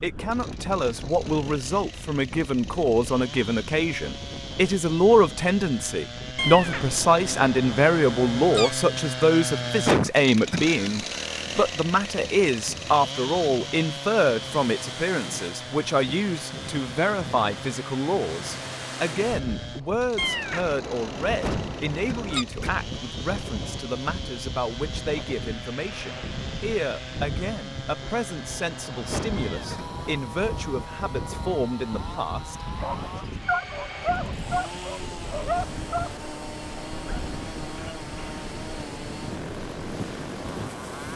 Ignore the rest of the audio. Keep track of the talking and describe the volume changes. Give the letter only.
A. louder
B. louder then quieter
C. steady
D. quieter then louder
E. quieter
E.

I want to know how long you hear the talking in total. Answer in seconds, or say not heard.
33 s.